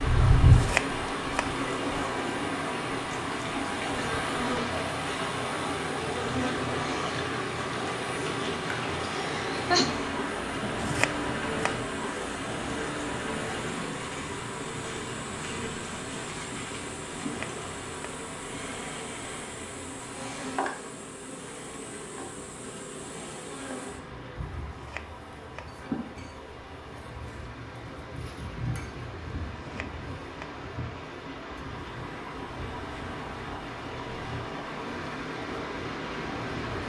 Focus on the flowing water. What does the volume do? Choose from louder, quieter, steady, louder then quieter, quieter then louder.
quieter then louder.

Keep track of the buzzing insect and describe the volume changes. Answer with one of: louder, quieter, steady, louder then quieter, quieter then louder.
quieter.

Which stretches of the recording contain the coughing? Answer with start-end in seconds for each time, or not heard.
9.0-9.9.